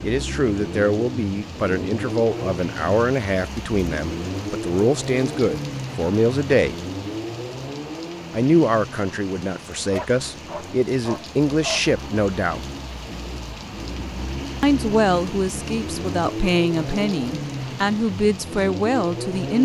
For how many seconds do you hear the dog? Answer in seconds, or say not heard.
2 s.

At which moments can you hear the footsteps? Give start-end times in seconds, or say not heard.
not heard.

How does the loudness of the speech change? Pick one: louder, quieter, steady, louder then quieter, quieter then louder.
steady.